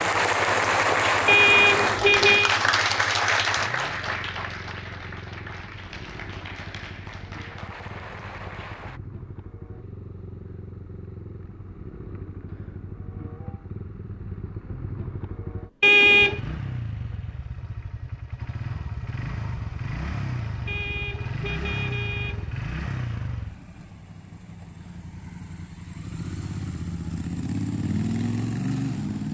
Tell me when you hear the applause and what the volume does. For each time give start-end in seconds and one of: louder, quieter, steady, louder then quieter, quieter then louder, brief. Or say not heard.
0.0-9.0 quieter.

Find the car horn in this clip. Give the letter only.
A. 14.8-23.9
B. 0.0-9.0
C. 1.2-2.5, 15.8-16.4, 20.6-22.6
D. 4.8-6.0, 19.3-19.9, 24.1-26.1
C.